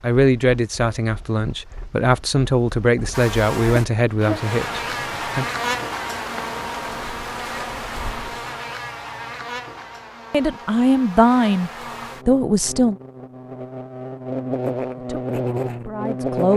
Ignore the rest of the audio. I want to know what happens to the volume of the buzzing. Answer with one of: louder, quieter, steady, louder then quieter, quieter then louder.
quieter then louder.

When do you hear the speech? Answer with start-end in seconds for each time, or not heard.
0.0-5.5, 10.3-12.9, 14.9-16.5.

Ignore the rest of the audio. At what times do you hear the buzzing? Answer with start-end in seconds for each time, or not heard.
3.1-16.5.